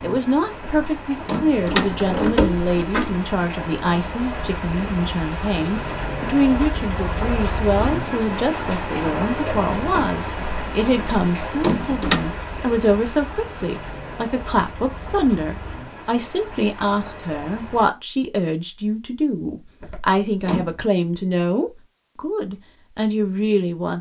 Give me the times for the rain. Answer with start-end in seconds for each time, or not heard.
0.0-17.9.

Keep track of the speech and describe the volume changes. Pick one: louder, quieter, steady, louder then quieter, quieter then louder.
steady.